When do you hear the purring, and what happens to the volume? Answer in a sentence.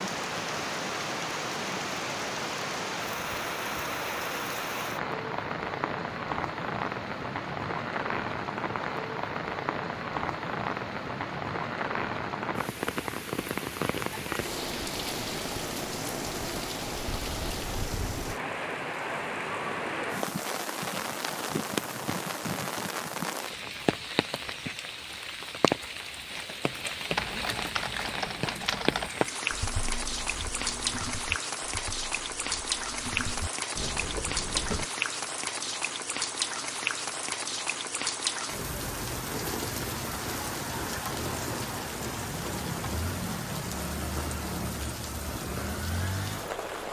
The purring can't be heard in this clip.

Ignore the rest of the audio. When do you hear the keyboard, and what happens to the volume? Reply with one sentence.
The keyboard can be heard from 27.1 to 34.9 s, getting quieter then louder.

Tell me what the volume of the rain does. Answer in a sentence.
The loudness of the rain stays about the same.